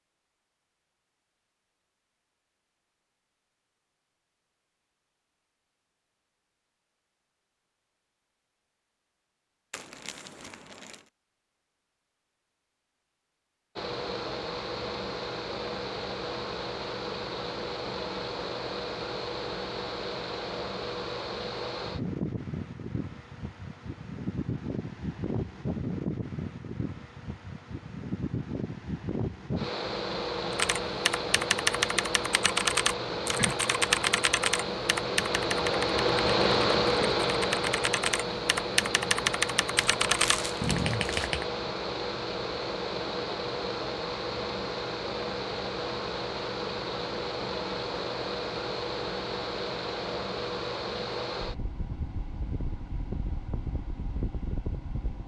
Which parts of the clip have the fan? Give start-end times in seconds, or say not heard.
13.8-55.2.